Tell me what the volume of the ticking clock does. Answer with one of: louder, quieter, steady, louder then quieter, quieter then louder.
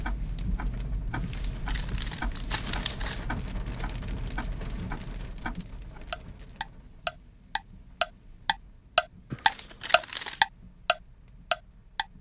louder.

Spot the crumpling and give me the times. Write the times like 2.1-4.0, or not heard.
1.1-3.2, 9.3-10.4.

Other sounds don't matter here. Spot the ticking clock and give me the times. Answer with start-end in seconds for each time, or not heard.
0.0-12.1.